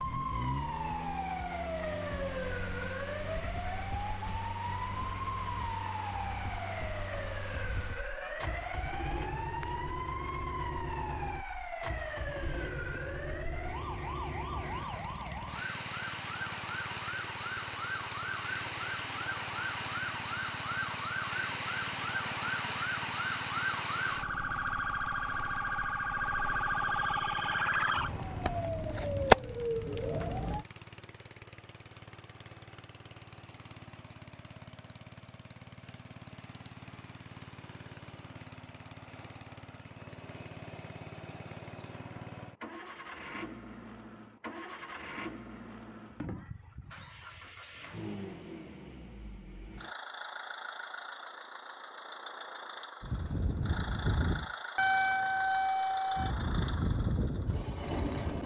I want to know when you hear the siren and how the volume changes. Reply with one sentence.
The siren can be heard from 0.0 to 30.6 s, getting louder; and from 53.0 to 58.4 s, getting louder then quieter.